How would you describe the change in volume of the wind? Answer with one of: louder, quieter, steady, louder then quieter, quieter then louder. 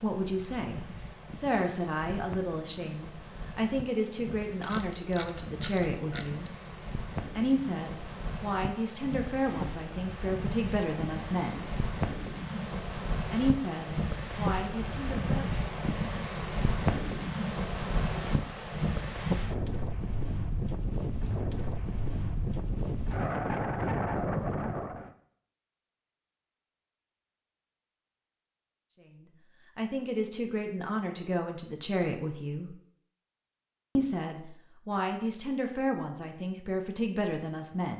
louder.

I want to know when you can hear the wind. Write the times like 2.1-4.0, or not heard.
0.0-25.1.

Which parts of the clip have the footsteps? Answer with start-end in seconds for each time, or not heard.
not heard.